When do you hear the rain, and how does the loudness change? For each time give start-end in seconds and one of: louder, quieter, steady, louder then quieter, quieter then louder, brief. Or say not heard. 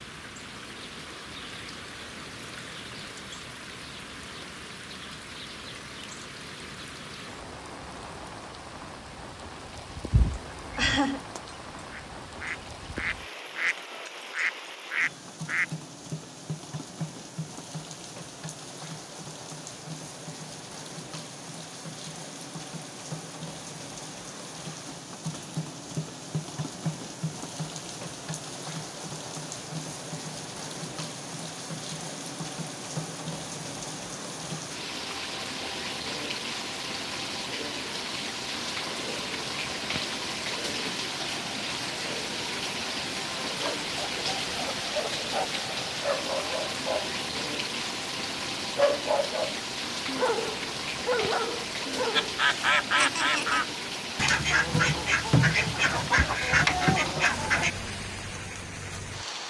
0.0-59.4 louder.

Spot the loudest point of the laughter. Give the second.
11 s.